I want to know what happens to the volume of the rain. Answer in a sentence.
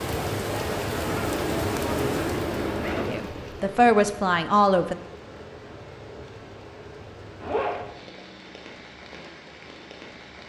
The volume of the rain goes down.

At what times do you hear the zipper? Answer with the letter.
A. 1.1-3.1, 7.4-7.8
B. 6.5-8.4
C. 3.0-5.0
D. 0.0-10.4
A.